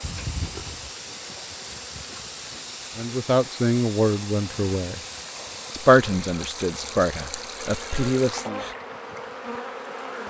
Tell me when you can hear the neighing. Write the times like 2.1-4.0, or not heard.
0.0-0.9, 7.6-8.8.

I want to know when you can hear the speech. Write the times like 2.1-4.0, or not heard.
3.0-5.0, 5.7-8.7.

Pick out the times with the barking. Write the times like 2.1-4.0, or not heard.
not heard.